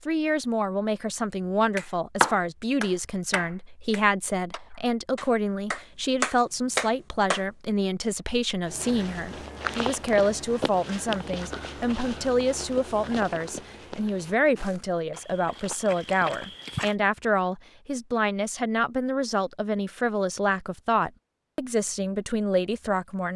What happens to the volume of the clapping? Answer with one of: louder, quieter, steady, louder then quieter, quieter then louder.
quieter then louder.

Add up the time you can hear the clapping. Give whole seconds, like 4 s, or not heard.
6 s.